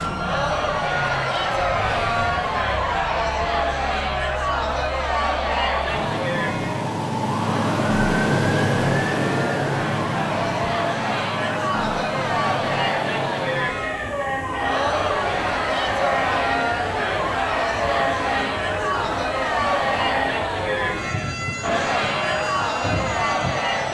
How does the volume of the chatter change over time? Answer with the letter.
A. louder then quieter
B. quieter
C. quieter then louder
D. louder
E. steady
E.